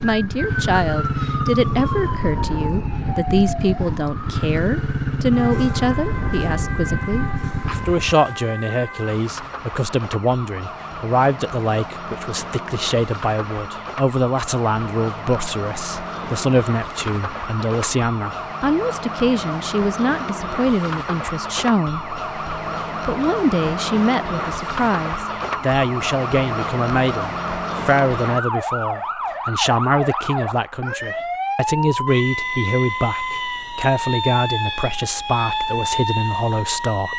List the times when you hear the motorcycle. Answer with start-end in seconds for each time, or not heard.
0.0-8.2.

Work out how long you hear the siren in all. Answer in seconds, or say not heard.
37 s.